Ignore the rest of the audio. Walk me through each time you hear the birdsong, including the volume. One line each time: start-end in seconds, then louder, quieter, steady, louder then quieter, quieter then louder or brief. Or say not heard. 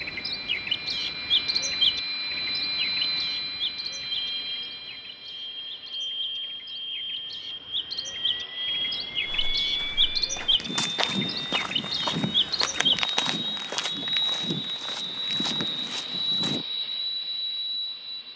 0.0-13.1 quieter then louder.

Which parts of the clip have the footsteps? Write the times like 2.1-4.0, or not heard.
9.2-16.6.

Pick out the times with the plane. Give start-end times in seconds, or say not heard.
0.0-18.3.